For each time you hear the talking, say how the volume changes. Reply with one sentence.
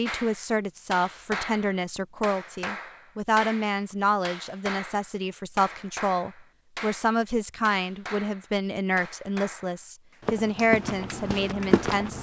You can hear the talking from 0.0 to 12.1 s, at a steady volume.